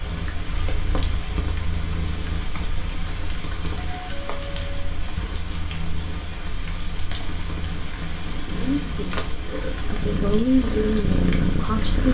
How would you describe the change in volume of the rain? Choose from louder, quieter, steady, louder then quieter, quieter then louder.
steady.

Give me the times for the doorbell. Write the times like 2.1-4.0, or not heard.
3.8-5.0.